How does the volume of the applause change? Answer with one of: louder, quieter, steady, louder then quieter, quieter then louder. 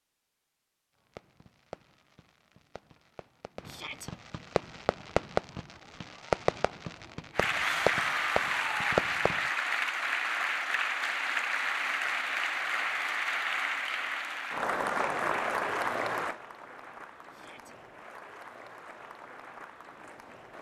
quieter.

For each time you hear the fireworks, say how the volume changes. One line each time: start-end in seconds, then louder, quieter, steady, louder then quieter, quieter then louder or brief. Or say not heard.
1.1-9.5 louder.